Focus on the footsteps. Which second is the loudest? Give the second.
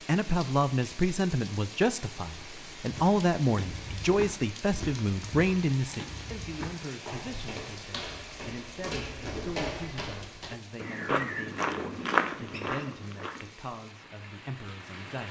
12 s.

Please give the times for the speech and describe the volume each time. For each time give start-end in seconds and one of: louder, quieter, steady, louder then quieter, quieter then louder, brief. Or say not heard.
0.1-15.2 quieter.